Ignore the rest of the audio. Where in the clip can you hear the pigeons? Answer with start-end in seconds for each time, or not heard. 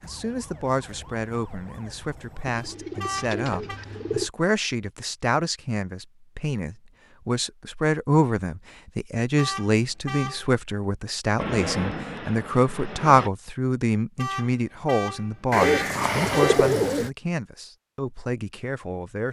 2.5-4.3, 15.5-17.1.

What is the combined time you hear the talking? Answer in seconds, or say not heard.
19 s.